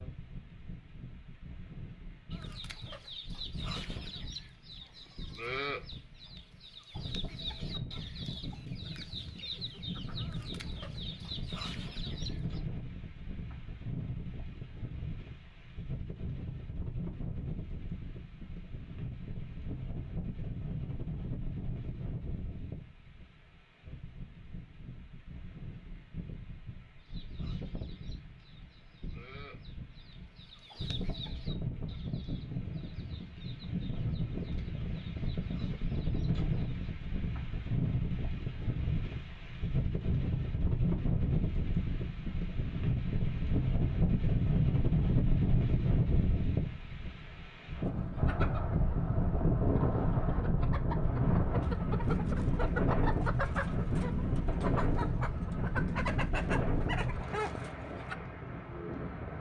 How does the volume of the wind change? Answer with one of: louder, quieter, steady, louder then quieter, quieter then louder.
louder.